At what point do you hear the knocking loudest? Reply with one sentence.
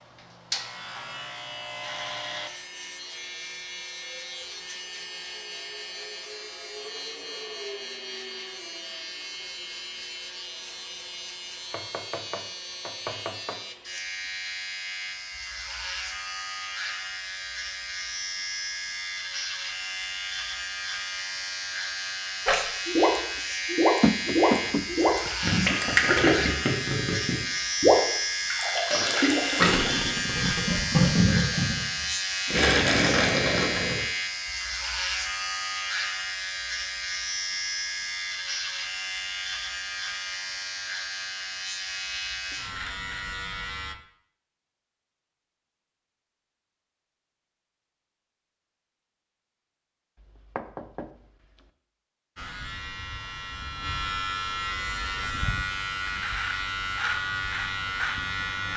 The loudest moment of the knocking is at 24 seconds.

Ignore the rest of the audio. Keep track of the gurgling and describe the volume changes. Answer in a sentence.
The volume of the gurgling stays about the same.